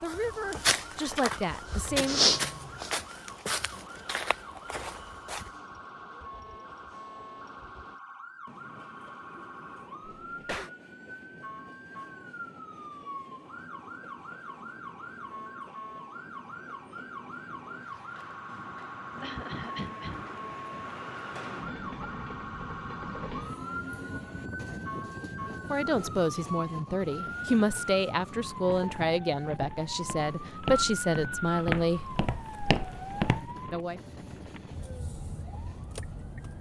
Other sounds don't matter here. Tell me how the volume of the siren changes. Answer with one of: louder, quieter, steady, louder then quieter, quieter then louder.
louder.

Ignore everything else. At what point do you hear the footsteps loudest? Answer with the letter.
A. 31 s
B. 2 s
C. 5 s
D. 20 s
B.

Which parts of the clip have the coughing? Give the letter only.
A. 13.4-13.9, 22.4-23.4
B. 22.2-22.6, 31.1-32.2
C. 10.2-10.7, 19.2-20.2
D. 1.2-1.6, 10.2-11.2
C.